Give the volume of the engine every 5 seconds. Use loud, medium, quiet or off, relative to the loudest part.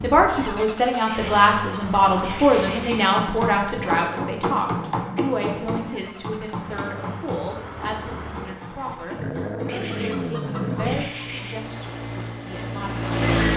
medium, medium, loud.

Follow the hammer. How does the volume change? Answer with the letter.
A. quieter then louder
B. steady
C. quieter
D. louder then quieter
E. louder
C.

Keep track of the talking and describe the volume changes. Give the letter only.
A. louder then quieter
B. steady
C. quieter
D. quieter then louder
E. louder
C.